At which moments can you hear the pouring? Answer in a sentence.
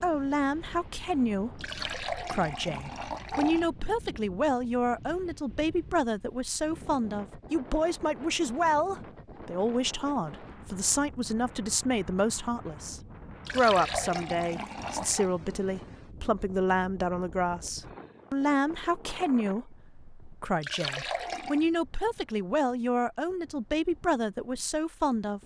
You can hear the pouring from 1.6 to 3.7 s, from 13.4 to 15.3 s and from 20.6 to 21.6 s.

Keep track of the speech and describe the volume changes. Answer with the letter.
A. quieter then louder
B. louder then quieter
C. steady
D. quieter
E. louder
C.